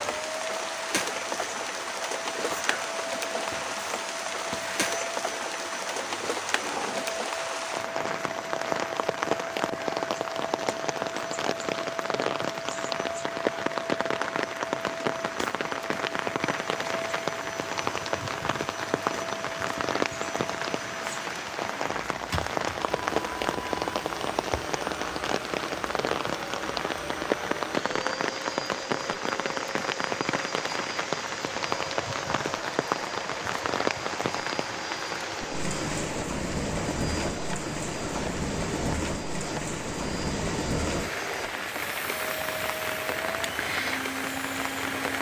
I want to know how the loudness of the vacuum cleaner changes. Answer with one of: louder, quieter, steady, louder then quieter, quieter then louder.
steady.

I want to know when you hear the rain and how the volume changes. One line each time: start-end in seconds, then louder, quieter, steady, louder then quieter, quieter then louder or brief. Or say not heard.
0.0-45.1 steady.